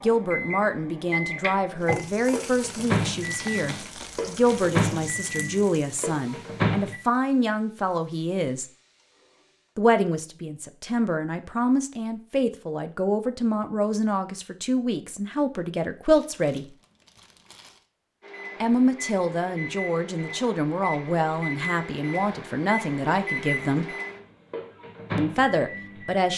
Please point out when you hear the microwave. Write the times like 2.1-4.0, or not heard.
0.0-7.0, 18.2-26.3.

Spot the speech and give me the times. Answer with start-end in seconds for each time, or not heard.
0.0-8.7, 9.8-16.6, 18.6-23.9, 25.1-26.3.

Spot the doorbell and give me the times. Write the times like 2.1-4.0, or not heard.
not heard.